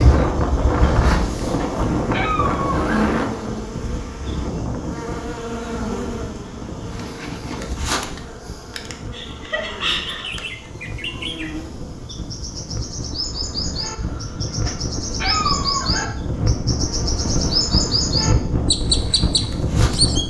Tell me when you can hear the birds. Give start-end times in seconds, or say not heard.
10.1-20.2.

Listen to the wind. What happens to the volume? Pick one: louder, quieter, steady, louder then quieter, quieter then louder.
quieter then louder.